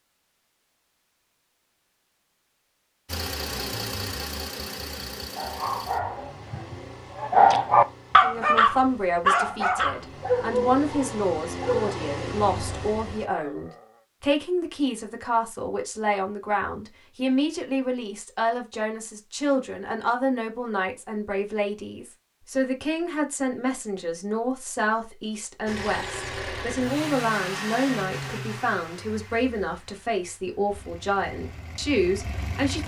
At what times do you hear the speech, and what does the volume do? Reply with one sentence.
You can hear the speech from 8.2 to 32.8 s, at a steady volume.